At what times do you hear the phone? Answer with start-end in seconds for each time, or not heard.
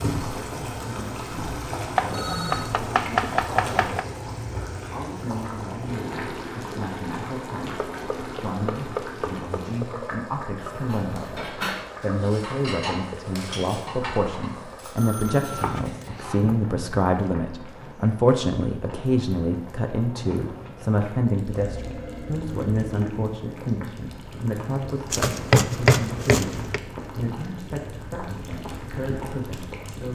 1.9-2.7, 14.9-15.7, 21.5-23.4.